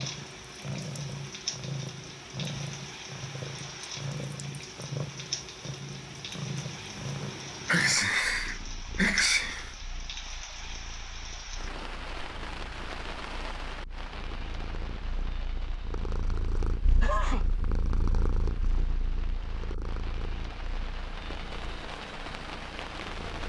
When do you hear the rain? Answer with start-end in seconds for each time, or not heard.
0.0-23.4.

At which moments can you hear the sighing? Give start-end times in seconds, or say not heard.
not heard.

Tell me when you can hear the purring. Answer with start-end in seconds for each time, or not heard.
0.0-23.4.